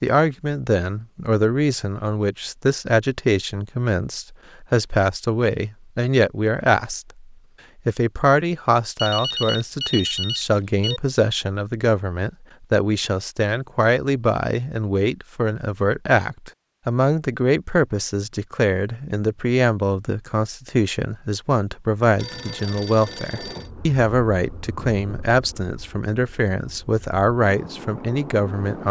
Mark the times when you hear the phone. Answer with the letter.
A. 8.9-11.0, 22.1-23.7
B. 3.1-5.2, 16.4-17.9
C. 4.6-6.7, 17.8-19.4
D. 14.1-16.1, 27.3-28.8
A.